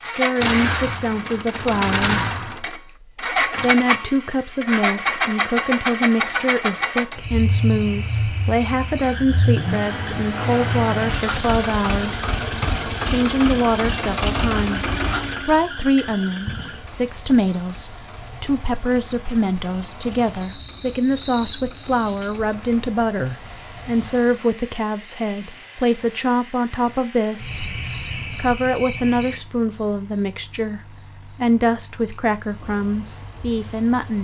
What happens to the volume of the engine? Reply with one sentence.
The loudness of the engine goes down.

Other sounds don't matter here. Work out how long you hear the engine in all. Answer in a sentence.
You can hear the engine for 34 seconds altogether.